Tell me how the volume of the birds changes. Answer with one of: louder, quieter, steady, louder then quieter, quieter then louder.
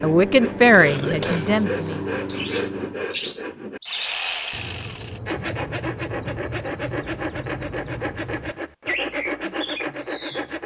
quieter then louder.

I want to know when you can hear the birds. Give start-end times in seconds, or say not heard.
2.2-10.6.